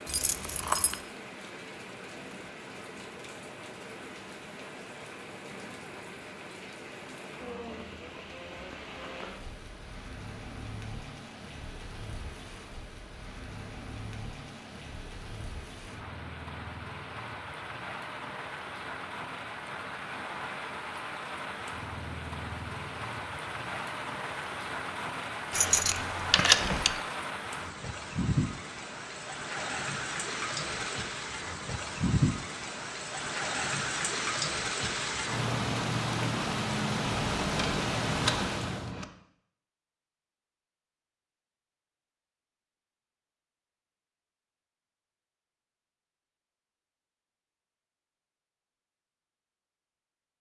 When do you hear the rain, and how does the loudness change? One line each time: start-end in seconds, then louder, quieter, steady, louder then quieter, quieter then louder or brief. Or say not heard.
0.0-39.0 louder.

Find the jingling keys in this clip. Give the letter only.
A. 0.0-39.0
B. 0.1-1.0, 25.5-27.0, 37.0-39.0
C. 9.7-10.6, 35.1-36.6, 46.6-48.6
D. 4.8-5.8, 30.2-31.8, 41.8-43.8
B.